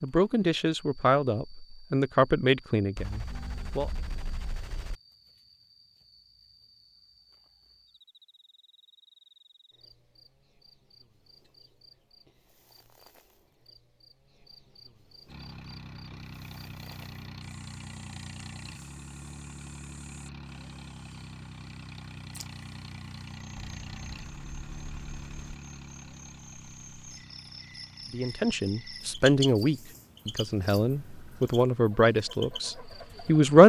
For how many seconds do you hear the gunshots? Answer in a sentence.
The gunshots can be heard for 4 seconds in total.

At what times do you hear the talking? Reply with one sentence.
You can hear the talking from 0.0 to 3.9 s and from 28.1 to 33.6 s.